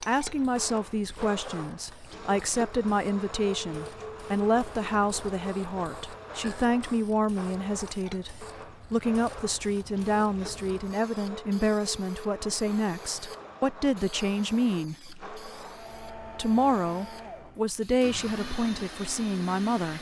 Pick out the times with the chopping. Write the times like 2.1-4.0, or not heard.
not heard.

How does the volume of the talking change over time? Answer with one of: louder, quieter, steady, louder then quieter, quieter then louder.
steady.